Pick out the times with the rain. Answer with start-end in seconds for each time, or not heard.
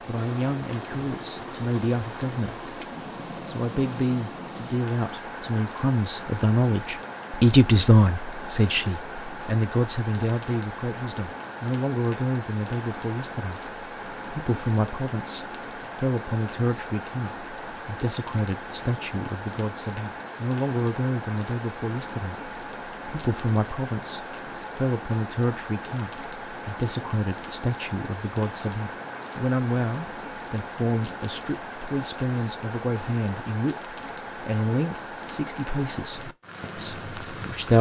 0.0-37.7.